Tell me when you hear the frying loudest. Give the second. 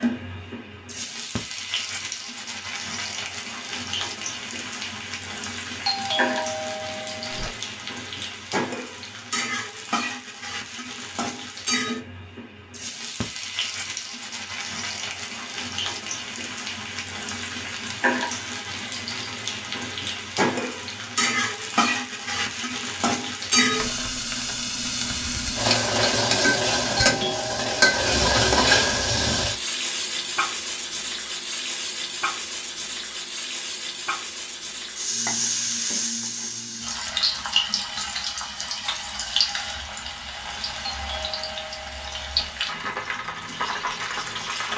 28 s.